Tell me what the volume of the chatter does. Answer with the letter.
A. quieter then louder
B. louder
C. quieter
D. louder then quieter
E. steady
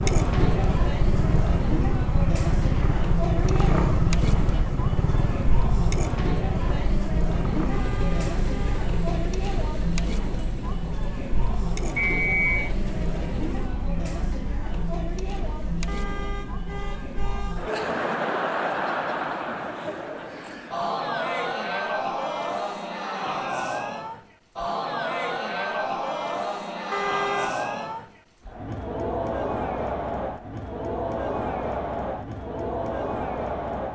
E.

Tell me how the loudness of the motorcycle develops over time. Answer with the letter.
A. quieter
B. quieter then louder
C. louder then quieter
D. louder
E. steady
A.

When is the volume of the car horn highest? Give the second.
27 s.